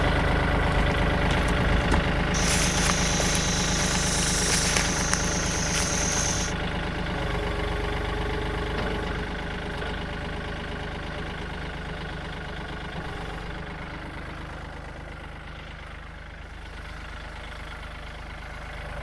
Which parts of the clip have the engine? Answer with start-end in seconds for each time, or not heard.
0.0-18.9.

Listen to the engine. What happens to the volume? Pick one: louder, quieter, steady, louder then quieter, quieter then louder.
quieter.